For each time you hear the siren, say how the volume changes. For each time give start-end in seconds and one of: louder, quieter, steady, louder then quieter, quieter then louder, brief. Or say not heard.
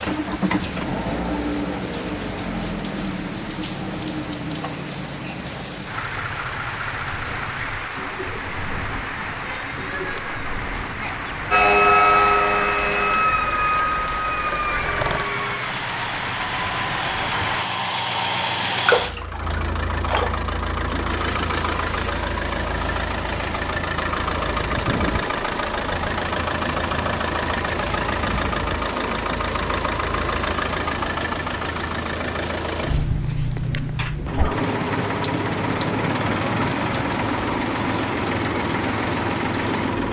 11.5-15.6 quieter.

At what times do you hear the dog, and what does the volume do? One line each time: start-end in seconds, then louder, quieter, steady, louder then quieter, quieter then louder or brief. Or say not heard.
not heard.